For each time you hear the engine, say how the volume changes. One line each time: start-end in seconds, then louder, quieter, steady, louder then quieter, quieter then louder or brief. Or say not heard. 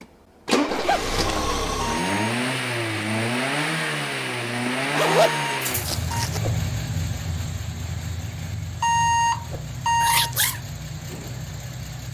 0.0-12.0 quieter.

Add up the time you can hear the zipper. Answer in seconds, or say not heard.
3 s.